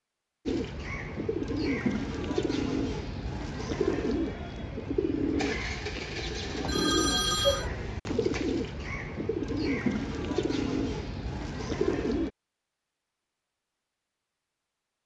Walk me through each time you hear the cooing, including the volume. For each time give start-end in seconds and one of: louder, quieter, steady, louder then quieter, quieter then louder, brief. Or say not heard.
0.5-12.3 steady.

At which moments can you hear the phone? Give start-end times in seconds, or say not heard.
6.7-7.7.